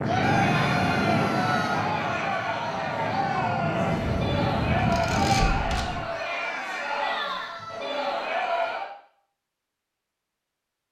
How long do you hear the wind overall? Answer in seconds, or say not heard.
6 s.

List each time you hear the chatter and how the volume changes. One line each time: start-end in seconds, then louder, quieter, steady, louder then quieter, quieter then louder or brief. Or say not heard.
0.0-8.9 steady.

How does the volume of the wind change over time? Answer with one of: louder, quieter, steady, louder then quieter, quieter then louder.
quieter then louder.